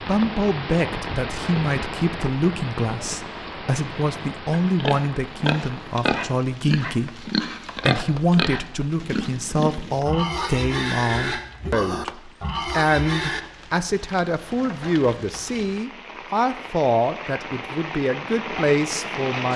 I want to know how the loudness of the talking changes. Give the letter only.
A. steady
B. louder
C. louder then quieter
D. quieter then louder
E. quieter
A.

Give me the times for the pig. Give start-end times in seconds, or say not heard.
4.5-13.4.